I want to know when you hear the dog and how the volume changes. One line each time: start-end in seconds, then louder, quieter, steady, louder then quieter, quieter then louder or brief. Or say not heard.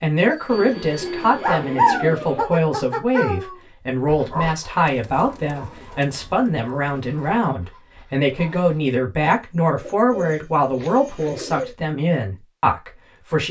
1.4-8.8 quieter.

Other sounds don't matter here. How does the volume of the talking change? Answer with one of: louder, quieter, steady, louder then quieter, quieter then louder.
steady.